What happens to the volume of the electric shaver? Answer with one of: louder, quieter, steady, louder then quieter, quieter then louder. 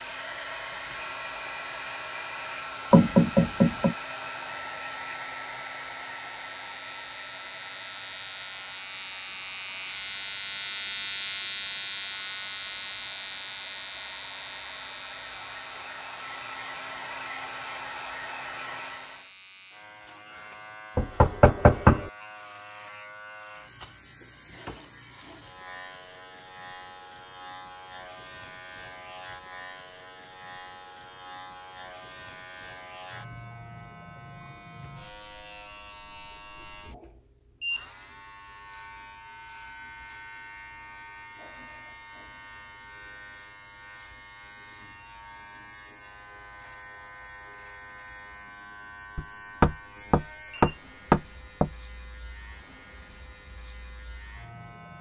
quieter.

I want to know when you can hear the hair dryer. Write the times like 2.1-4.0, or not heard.
0.0-19.3.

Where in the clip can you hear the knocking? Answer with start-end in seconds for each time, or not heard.
2.9-4.0, 20.9-22.1, 49.1-51.7.